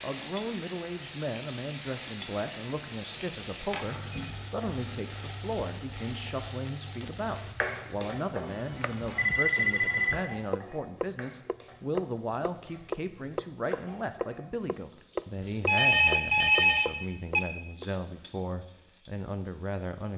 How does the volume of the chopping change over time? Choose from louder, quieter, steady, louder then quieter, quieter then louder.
louder.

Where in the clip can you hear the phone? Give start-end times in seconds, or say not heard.
3.1-4.3, 9.1-10.8, 15.7-17.4.